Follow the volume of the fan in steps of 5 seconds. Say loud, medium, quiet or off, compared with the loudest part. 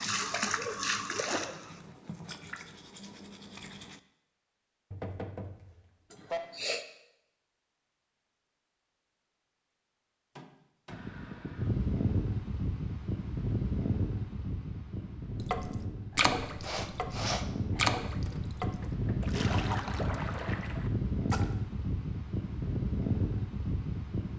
off, off, loud, loud, loud.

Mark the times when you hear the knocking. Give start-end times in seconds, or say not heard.
4.9-6.4, 10.3-11.1, 18.6-19.4.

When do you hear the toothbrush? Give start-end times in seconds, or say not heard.
0.0-4.0.